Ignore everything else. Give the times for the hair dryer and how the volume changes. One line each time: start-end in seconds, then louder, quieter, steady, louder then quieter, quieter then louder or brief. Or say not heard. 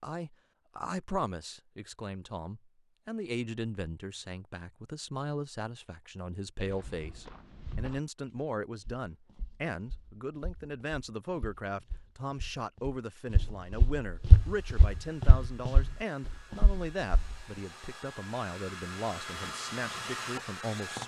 14.2-21.0 louder.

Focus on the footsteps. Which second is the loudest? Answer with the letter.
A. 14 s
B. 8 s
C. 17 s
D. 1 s
A.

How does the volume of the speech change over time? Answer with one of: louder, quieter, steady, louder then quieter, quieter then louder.
steady.